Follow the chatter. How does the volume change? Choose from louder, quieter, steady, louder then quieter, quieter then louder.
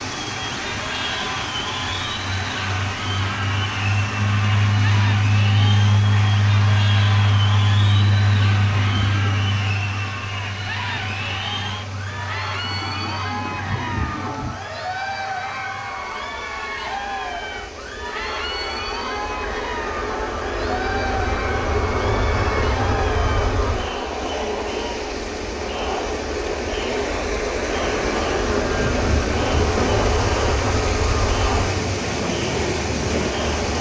steady.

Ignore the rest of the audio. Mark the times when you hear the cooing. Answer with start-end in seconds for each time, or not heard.
7.7-9.5, 12.6-14.6, 27.8-30.1.